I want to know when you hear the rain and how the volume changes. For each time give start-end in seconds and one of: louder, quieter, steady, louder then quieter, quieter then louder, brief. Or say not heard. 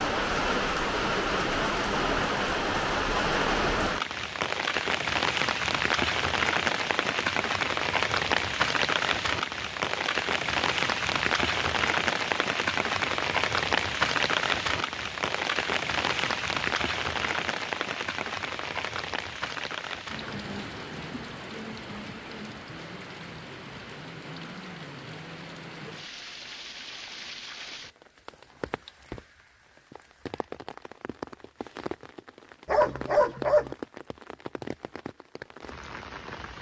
0.0-36.5 quieter.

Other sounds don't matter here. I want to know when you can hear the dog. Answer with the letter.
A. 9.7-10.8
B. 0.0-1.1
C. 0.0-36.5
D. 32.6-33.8
D.